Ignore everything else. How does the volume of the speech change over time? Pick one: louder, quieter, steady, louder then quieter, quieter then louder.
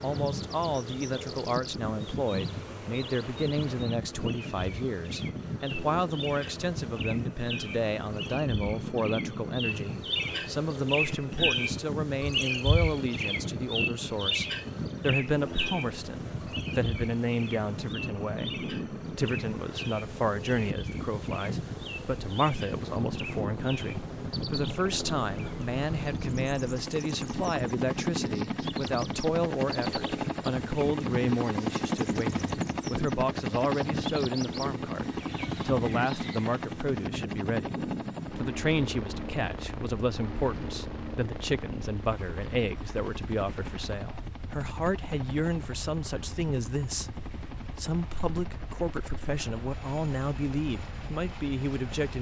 steady.